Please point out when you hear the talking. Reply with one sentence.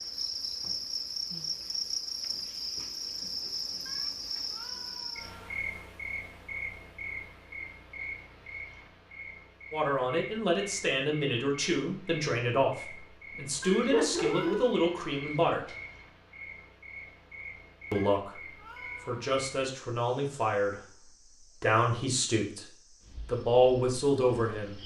You can hear the talking from 9.7 to 15.7 s, from 17.9 to 22.6 s and from 23.2 to 24.8 s.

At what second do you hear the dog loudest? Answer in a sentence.
The loudest moment of the dog is at 14 seconds.